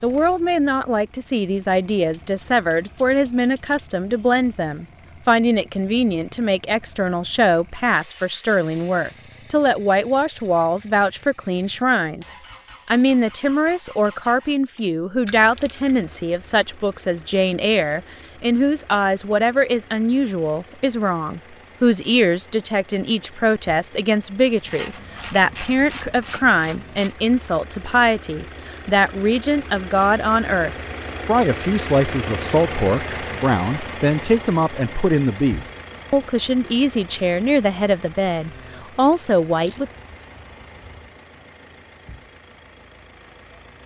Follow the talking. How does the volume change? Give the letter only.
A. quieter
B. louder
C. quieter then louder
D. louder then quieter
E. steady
E.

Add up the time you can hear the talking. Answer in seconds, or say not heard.
40 s.